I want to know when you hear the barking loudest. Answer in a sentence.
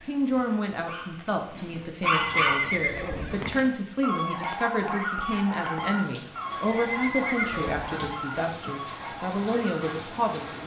The volume of the barking peaks at 2 seconds.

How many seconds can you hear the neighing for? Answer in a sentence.
You can hear the neighing for 3 seconds altogether.